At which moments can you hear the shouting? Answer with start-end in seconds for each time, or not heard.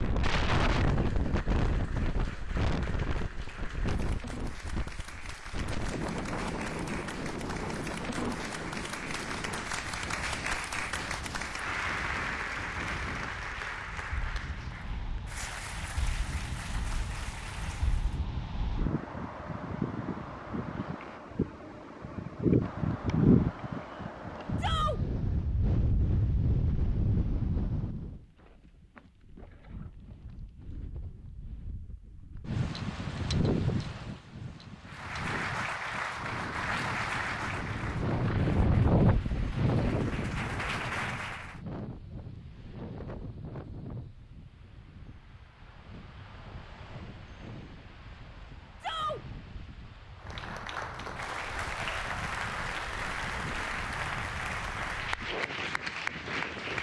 24.6-25.0, 48.8-49.2.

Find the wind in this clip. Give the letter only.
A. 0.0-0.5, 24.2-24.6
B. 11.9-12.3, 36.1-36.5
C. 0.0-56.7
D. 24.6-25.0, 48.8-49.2
C.